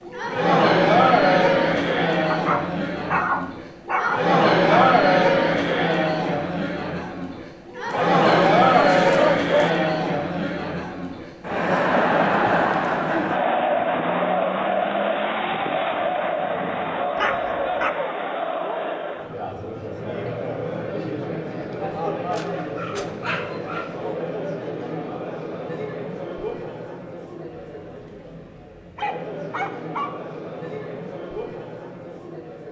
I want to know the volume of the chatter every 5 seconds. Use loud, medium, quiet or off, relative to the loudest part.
loud, loud, loud, medium, medium, quiet, quiet.